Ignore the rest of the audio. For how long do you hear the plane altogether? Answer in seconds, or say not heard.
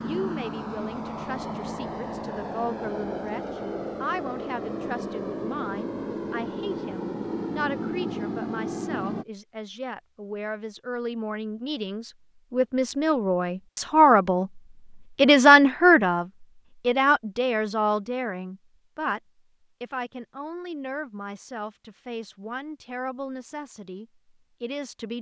9 s.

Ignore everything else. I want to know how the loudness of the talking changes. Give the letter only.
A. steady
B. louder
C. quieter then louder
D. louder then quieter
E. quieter
D.